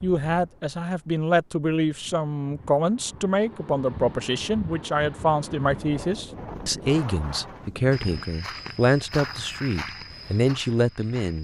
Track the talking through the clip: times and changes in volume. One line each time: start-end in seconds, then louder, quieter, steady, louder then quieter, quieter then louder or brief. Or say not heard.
0.0-11.4 steady.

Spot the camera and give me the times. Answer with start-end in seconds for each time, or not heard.
not heard.